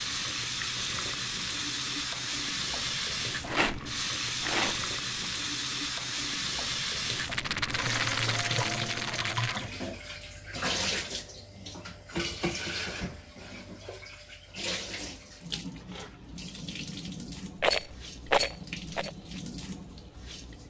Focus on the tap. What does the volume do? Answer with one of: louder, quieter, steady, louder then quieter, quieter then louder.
quieter.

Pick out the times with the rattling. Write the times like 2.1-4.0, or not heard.
3.4-5.2, 7.1-9.6, 17.6-19.1.